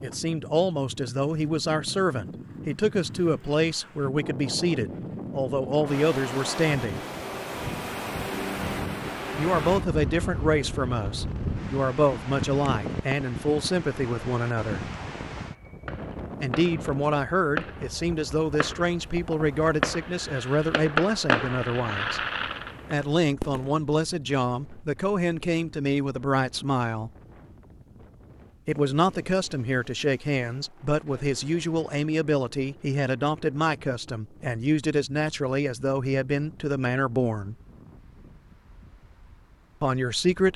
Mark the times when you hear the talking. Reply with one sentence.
You can hear the talking from 0.0 to 7.0 s, from 9.3 to 14.9 s, from 16.4 to 22.2 s, from 22.9 to 27.1 s, from 28.6 to 37.5 s and from 39.8 to 40.5 s.